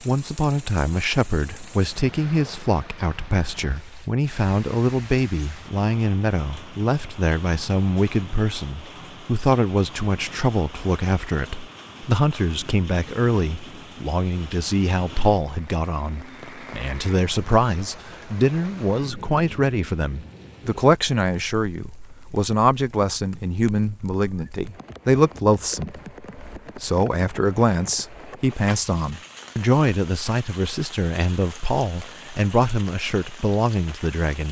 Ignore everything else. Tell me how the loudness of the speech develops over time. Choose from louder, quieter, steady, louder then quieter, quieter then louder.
steady.